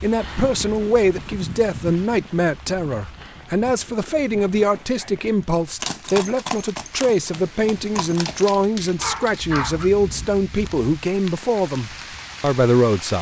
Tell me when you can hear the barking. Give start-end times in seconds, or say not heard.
8.2-9.9.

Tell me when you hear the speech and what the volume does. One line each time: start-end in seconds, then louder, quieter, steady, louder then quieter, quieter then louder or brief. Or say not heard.
0.0-13.1 steady.